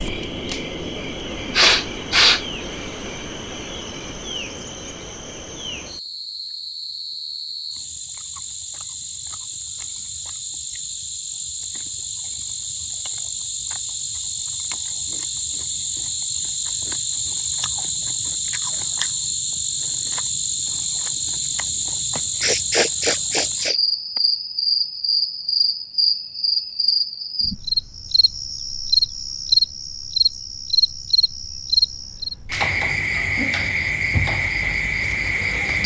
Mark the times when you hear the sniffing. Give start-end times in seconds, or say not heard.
1.5-2.4, 22.1-23.8.